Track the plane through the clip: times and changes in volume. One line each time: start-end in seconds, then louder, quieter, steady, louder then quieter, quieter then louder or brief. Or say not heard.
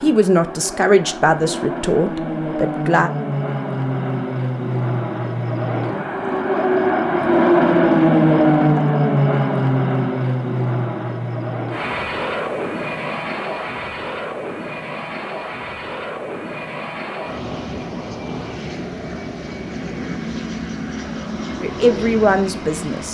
0.0-23.0 louder then quieter.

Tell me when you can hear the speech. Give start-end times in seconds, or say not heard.
0.0-3.1, 21.6-23.0.